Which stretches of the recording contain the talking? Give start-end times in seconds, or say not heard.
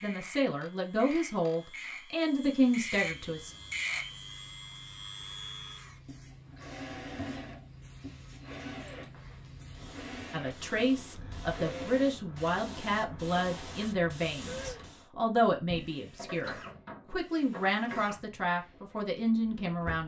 0.0-3.5, 10.3-20.0.